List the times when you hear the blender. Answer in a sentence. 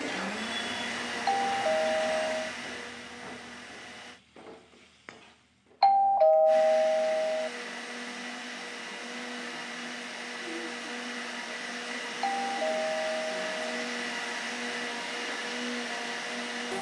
The blender can be heard from 0.0 to 4.2 s and from 6.5 to 16.7 s.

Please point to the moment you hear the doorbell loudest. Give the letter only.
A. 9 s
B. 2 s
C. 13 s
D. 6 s
D.